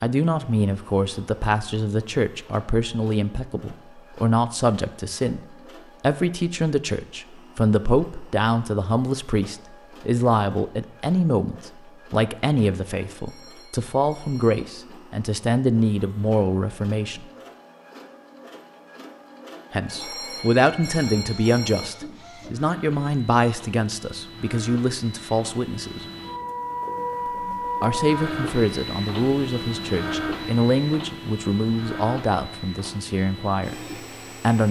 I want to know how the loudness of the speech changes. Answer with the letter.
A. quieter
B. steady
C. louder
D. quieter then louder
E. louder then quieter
B.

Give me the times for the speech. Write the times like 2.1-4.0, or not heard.
0.0-17.2, 19.7-26.1, 27.2-34.6.